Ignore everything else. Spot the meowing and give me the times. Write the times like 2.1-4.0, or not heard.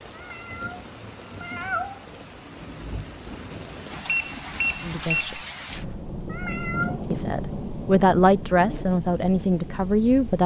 0.1-2.0, 6.2-7.0.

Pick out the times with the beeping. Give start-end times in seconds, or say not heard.
4.0-5.4.